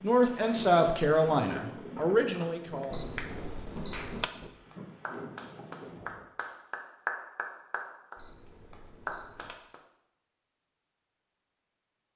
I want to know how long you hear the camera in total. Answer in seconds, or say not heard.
3 s.